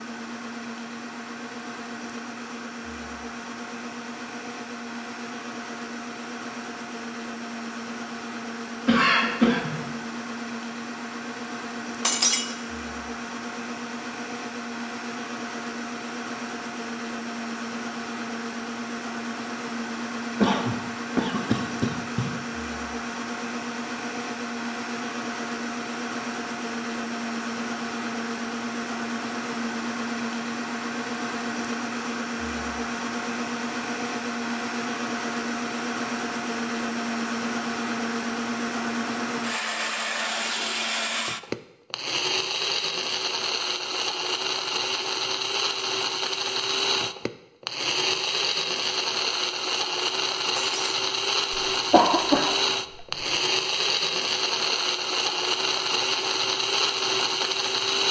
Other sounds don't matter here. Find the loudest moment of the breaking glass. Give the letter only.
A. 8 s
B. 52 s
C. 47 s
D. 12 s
D.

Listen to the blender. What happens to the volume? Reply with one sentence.
The loudness of the blender goes up.